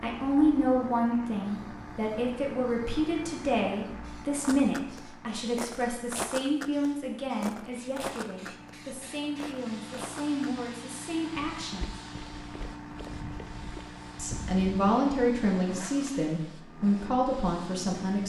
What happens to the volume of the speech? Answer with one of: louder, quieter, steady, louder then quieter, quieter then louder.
quieter then louder.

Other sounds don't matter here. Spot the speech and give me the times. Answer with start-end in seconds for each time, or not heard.
0.0-11.9, 14.2-18.2.